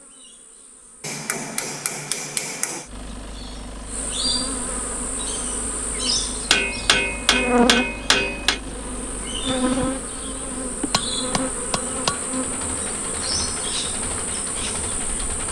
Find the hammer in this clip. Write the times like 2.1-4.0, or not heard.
1.0-2.9, 6.5-8.6, 10.9-12.2.